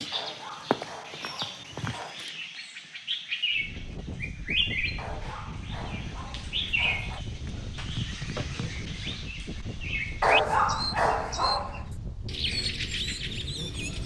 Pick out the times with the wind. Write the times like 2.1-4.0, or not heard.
3.5-14.0.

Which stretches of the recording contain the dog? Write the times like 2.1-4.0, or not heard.
0.1-2.2, 5.0-7.2, 10.2-11.8.